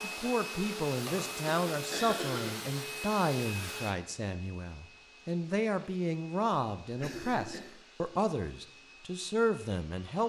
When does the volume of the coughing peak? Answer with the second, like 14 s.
2 s.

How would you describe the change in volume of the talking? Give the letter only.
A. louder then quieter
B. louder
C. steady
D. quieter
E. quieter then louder
C.